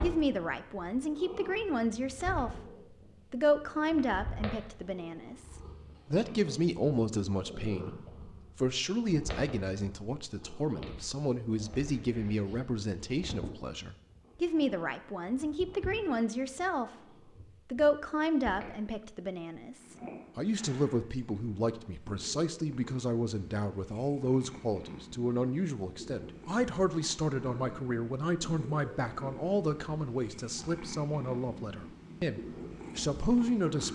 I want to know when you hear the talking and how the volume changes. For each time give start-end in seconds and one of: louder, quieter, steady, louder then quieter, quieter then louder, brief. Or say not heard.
0.0-2.5 brief
3.3-16.9 steady
17.7-33.9 steady.